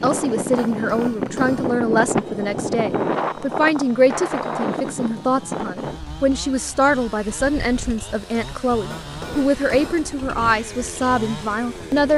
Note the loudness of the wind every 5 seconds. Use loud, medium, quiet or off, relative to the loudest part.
loud, medium, quiet.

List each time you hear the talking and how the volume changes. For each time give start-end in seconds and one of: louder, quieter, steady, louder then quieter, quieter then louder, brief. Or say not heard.
0.0-12.1 steady.